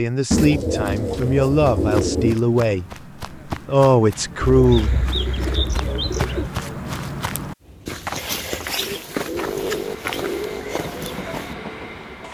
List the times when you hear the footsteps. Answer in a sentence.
The footsteps can be heard from 1.0 to 11.6 s.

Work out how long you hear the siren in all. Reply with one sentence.
You can't hear the siren here.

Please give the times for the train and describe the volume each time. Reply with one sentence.
The train can be heard from 7.6 to 12.2 s, getting louder.